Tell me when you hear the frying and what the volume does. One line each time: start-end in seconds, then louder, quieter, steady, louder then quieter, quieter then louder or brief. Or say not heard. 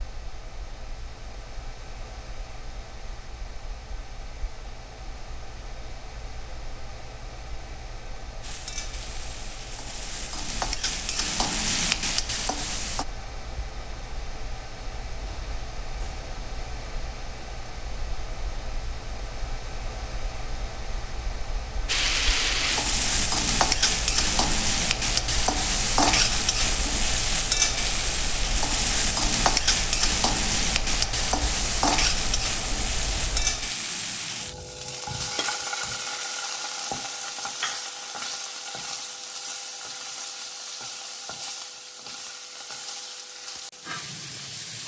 8.4-13.1 louder
21.9-44.8 quieter.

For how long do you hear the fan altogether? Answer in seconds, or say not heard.
34 s.